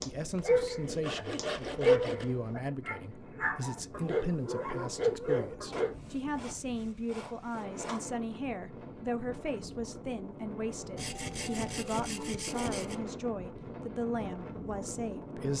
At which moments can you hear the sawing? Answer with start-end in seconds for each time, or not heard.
0.3-2.2, 5.7-8.1, 10.9-12.9.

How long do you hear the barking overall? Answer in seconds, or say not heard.
6 s.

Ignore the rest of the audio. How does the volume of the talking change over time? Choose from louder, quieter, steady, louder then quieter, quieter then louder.
steady.